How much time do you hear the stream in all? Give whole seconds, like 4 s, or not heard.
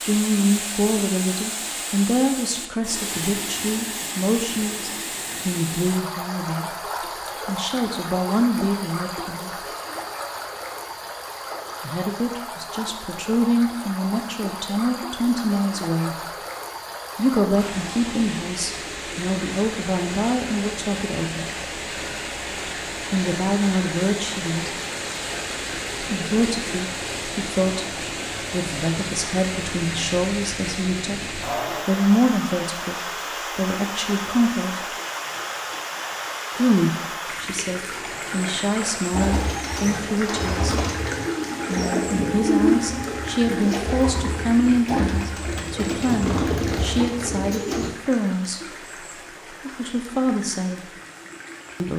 52 s.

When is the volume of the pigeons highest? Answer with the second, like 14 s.
43 s.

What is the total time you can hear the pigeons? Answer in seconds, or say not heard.
9 s.